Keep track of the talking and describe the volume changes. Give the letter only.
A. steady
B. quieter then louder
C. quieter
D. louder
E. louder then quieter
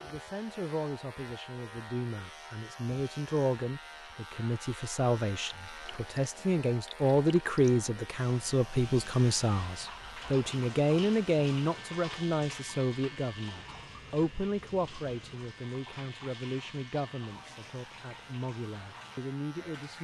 E.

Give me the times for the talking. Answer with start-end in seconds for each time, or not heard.
0.0-19.9.